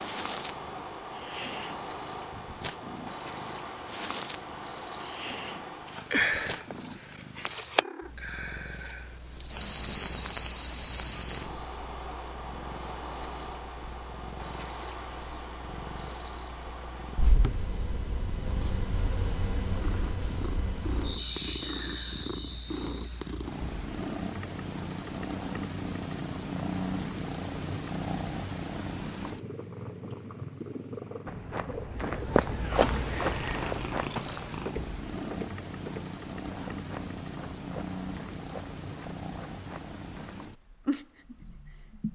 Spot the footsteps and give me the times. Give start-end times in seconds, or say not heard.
31.2-40.4.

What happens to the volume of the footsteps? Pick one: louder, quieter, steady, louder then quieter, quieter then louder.
quieter.